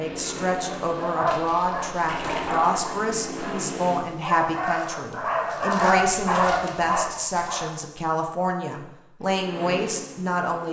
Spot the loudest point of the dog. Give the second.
6 s.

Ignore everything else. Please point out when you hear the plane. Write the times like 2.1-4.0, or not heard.
0.0-4.0, 9.2-10.6.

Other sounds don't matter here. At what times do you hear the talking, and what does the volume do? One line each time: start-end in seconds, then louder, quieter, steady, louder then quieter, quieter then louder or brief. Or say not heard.
0.0-10.6 steady.